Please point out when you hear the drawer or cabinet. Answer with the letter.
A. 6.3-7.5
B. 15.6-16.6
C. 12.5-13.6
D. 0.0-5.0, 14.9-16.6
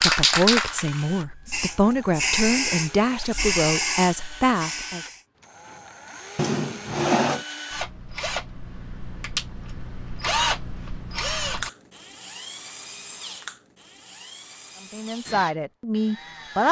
A.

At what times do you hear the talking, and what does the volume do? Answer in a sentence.
The talking can be heard from 0.0 to 5.0 s, at a steady volume; and briefly from 14.9 to 16.6 s.